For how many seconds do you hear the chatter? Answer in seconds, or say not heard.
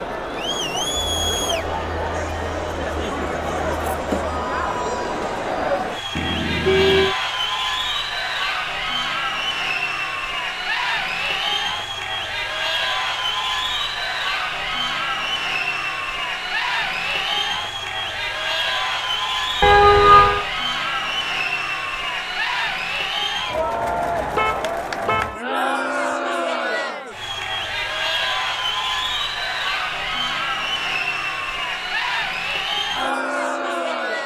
34 s.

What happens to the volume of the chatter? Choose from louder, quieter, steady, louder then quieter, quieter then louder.
steady.